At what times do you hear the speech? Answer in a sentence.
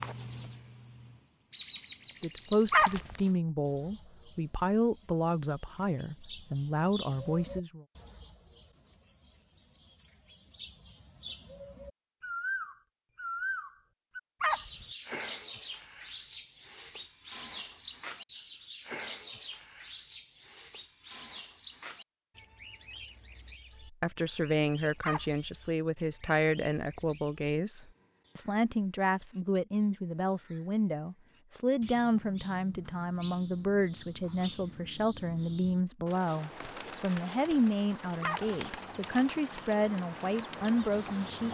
You can hear the speech from 2.2 to 7.8 s and from 23.9 to 41.4 s.